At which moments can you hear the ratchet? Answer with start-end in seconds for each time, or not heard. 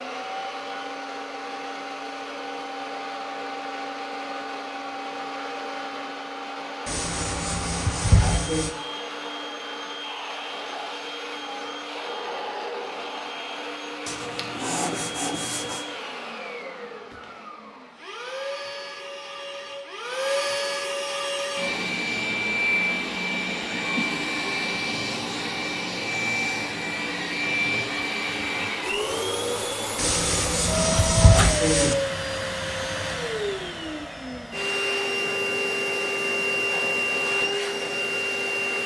not heard.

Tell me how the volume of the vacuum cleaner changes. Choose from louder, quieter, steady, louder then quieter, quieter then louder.
louder.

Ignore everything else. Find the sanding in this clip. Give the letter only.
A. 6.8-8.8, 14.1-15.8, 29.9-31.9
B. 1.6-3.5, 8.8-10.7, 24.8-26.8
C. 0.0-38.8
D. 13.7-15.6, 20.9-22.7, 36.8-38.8
A.